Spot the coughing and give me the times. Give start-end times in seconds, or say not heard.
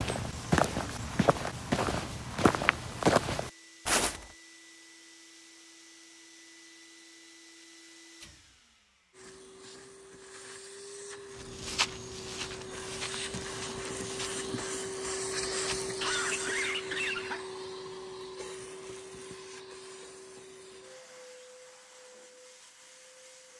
15.9-17.4.